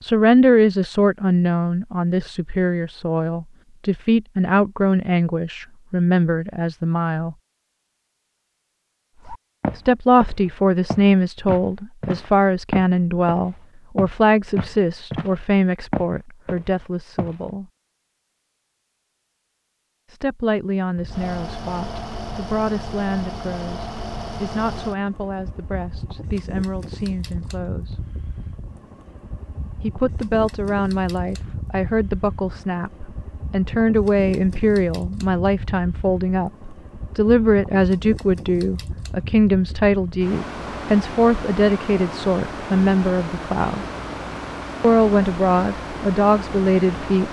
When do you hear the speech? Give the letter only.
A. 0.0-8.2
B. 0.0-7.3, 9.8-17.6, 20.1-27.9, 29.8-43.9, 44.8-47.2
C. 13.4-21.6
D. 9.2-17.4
B.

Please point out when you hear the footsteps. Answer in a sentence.
The footsteps can be heard from 9.2 to 17.4 s.